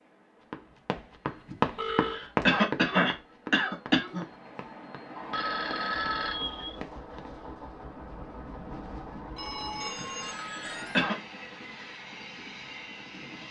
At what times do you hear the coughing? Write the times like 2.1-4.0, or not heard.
1.4-4.2, 9.9-11.2.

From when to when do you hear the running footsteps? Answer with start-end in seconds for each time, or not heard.
0.4-7.3.